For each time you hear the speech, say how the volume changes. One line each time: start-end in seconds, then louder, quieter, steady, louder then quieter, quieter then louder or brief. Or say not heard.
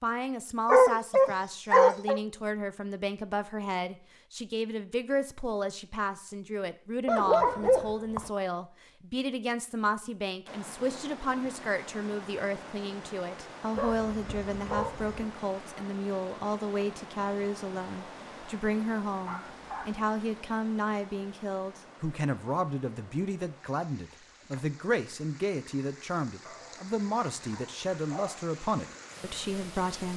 0.0-30.1 steady.